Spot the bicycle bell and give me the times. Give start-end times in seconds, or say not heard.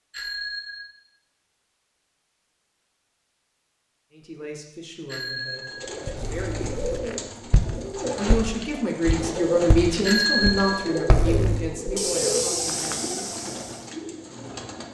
0.1-0.9, 5.0-7.0, 10.0-11.6.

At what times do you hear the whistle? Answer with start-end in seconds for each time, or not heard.
not heard.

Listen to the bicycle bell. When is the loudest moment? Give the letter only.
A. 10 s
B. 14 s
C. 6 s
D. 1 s
A.